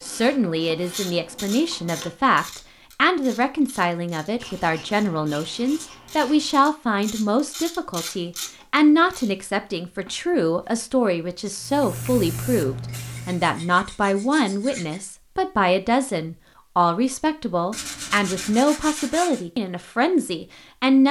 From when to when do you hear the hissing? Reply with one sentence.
The hissing can be heard from 11.6 to 13.6 s.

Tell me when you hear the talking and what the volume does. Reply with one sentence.
You can hear the talking from 0.0 to 21.0 s, at a steady volume.